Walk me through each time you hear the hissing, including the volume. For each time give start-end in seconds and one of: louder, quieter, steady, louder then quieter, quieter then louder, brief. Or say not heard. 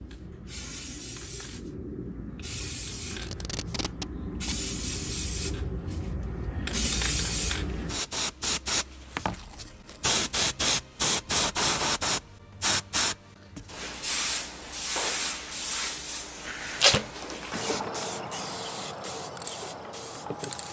0.0-20.6 louder then quieter.